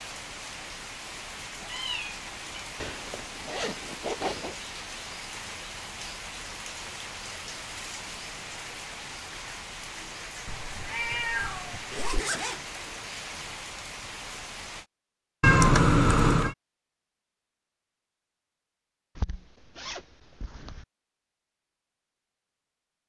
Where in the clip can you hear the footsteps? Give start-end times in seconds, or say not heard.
not heard.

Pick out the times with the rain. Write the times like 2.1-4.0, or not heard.
0.0-14.8.